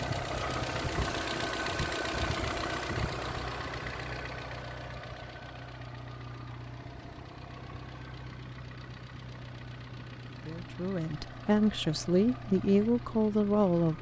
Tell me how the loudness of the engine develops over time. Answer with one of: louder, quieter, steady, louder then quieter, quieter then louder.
quieter.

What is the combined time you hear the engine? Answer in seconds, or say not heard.
14 s.